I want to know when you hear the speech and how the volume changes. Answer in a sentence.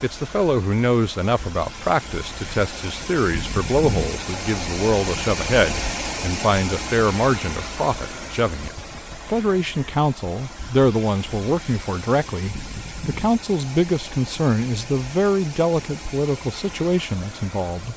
You can hear the speech from 0.0 to 17.9 s, at a steady volume.